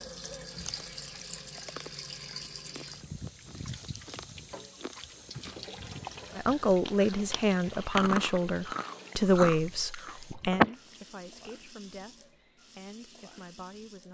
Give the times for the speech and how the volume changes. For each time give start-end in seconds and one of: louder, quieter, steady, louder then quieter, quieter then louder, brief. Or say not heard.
6.3-14.0 quieter.